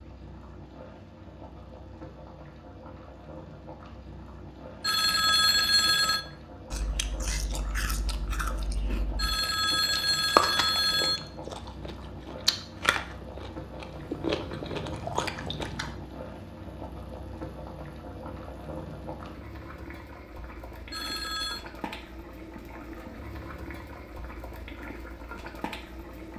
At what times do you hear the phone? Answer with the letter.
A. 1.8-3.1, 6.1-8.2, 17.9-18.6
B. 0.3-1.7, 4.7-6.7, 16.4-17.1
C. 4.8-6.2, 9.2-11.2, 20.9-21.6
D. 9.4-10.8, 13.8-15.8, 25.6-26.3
C.